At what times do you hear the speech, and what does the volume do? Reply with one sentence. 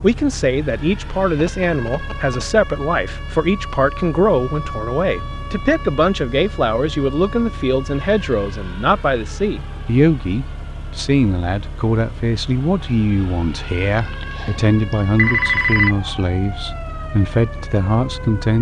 The speech can be heard from 0.0 to 18.5 s, at a steady volume.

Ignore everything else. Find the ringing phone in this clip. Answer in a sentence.
The ringing phone can be heard from 1.4 to 2.5 s and from 13.9 to 15.9 s.